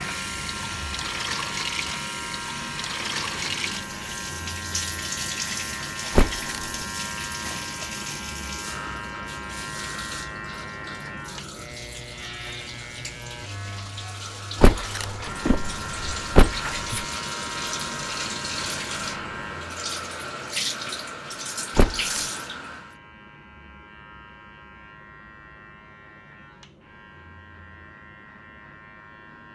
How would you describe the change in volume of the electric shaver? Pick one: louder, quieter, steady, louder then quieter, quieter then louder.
quieter.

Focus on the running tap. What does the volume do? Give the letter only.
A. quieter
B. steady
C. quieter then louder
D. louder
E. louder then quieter
C.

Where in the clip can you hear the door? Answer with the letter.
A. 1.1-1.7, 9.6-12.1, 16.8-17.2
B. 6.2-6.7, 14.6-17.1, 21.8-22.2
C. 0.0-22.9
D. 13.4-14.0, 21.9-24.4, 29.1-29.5
B.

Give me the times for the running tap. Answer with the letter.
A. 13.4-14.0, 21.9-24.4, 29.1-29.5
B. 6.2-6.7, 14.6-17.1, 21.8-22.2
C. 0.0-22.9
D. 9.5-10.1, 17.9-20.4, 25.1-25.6
C.